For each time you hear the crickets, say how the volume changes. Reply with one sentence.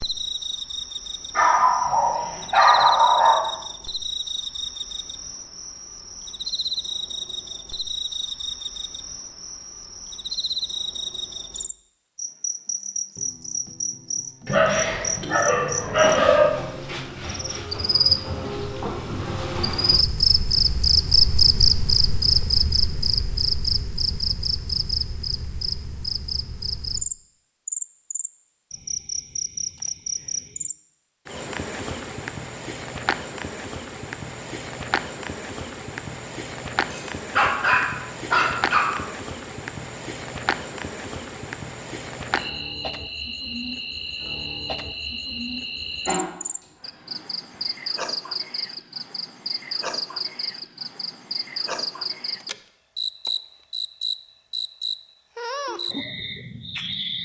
The crickets can be heard from 0.0 to 57.2 s, getting louder then quieter.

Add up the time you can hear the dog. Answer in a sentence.
You can hear the dog for 7 seconds altogether.